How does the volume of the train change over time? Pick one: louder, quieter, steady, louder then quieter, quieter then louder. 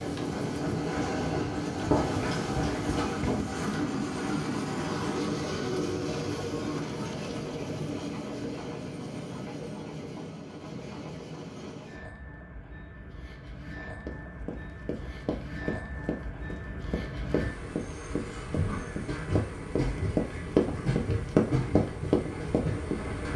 quieter then louder.